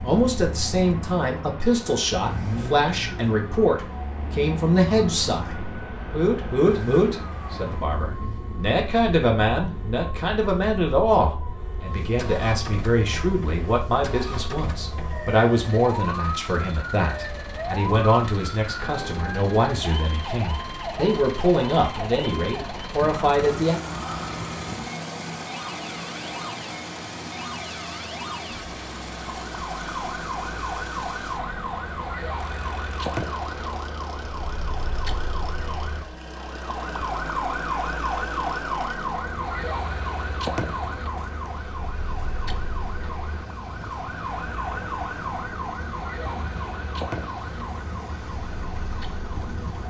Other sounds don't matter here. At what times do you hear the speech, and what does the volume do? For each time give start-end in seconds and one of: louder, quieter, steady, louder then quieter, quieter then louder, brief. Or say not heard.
0.0-23.8 steady.